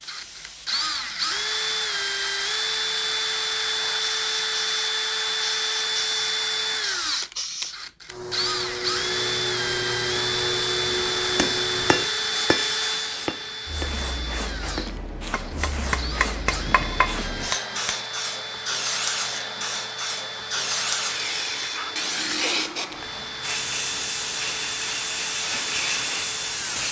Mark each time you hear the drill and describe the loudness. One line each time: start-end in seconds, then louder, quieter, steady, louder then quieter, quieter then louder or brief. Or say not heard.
0.0-26.8 quieter.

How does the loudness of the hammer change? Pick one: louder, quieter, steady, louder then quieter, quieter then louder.
quieter then louder.